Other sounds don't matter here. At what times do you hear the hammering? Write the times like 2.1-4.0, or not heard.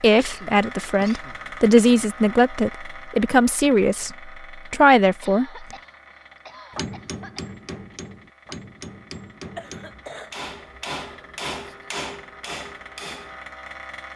6.7-13.4.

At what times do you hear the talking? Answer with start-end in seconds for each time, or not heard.
0.0-5.7.